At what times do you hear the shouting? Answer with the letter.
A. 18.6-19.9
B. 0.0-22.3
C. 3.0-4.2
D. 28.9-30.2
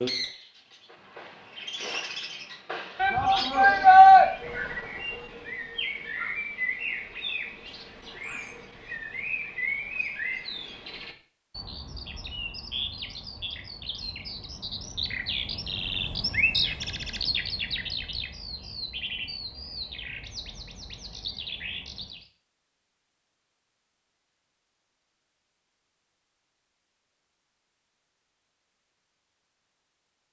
C.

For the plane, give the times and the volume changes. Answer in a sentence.
You can't hear the plane here.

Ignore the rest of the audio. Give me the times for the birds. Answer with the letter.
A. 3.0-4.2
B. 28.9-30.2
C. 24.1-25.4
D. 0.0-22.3
D.